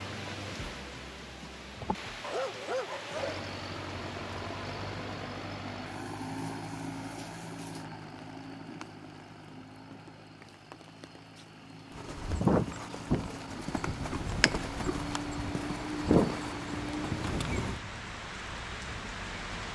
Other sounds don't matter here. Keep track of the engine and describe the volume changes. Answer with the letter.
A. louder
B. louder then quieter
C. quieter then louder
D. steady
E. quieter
C.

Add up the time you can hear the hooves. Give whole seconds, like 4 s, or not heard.
6 s.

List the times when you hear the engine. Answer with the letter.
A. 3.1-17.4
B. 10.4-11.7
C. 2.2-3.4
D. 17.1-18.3
A.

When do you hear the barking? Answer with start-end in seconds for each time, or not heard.
2.2-3.4.